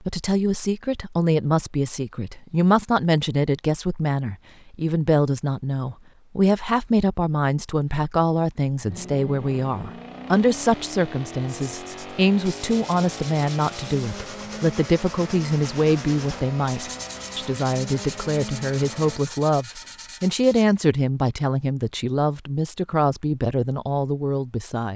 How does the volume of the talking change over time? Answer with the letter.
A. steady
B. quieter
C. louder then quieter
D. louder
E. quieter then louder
A.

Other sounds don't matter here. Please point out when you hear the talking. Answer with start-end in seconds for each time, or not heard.
0.1-24.9.